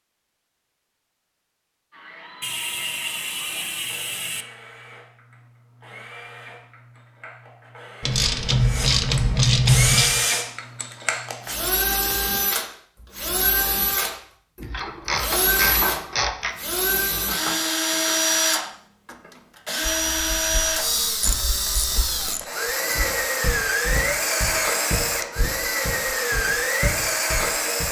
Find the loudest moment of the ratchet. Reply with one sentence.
The volume of the ratchet peaks at 10 seconds.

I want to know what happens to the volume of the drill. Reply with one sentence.
The loudness of the drill goes up.